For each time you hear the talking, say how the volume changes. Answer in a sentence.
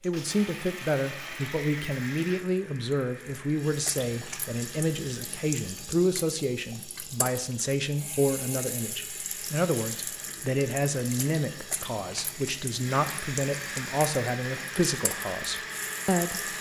The talking can be heard from 0.0 to 16.5 s, at a steady volume.